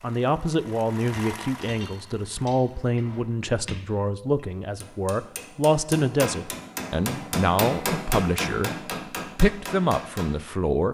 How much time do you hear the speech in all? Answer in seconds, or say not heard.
10 s.